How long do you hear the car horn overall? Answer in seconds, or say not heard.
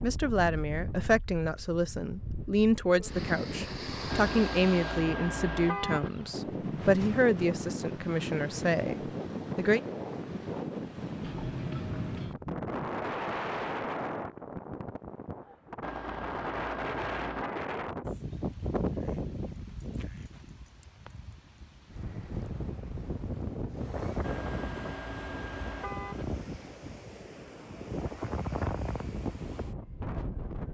6 s.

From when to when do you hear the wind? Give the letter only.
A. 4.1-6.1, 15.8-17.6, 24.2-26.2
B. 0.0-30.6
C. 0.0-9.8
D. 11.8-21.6
B.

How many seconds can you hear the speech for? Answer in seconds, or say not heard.
10 s.